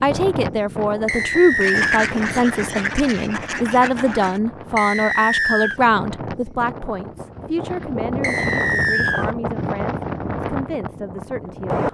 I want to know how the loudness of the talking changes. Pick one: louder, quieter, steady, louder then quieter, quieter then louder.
quieter.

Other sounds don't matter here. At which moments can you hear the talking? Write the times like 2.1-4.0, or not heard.
0.0-11.9.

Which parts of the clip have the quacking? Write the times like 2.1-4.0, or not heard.
1.6-4.4.